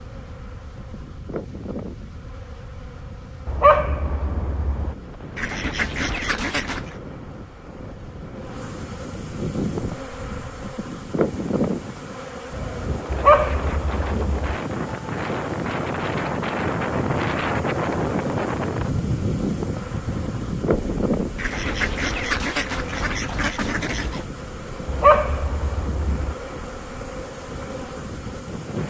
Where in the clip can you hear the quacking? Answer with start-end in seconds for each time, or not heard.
5.3-7.0, 21.4-24.2.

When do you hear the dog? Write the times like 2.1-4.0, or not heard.
3.5-5.0, 13.1-14.5, 24.9-26.4.